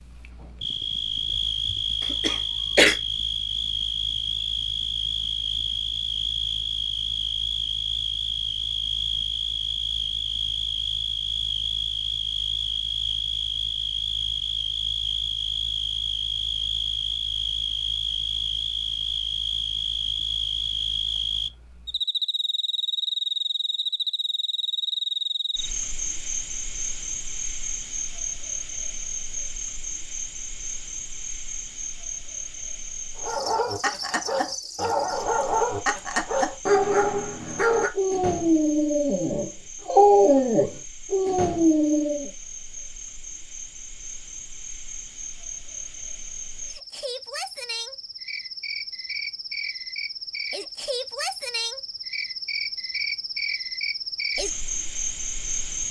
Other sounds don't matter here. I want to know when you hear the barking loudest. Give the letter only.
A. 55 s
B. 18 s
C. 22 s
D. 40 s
D.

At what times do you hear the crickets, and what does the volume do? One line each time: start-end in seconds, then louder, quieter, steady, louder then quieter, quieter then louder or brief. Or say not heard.
0.0-55.8 quieter then louder.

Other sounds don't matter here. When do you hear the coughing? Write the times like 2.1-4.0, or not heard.
2.0-3.0.